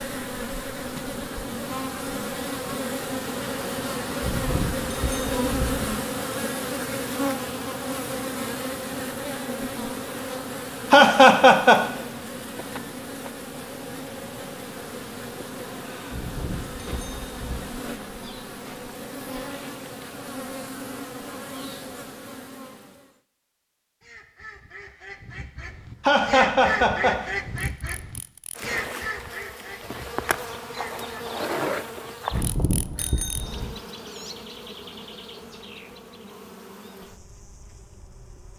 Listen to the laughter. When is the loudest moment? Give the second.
11 s.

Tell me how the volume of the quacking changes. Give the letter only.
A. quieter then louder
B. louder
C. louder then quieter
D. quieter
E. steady
C.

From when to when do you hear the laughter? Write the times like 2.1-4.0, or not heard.
10.9-11.8, 26.1-27.2.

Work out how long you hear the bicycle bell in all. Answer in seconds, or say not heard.
5 s.